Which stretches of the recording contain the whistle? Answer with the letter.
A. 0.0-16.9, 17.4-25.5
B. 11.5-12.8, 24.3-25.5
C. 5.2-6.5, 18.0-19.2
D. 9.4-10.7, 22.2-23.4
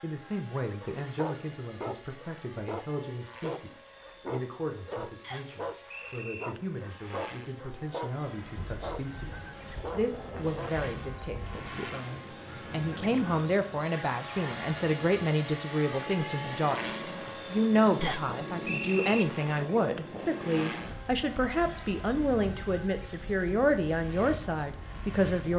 C.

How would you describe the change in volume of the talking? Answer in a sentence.
The loudness of the talking goes up.